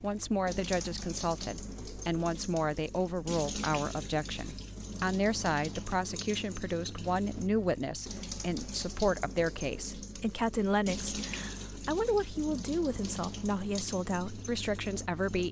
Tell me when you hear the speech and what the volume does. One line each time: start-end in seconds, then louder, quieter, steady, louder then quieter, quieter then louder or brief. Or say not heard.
0.0-15.4 steady.